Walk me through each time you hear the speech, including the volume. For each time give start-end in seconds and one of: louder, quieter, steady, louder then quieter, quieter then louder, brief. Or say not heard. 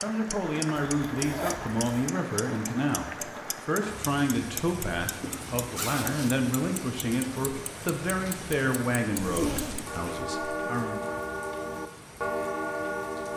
0.0-11.0 steady.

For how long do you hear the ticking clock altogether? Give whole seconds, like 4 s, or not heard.
13 s.